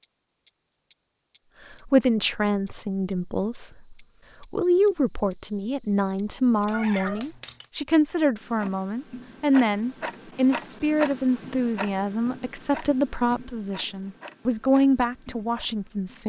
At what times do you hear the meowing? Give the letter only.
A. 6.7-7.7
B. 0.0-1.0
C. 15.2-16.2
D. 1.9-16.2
A.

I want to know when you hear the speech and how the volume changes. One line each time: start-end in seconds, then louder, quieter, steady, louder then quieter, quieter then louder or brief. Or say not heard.
1.9-16.2 steady.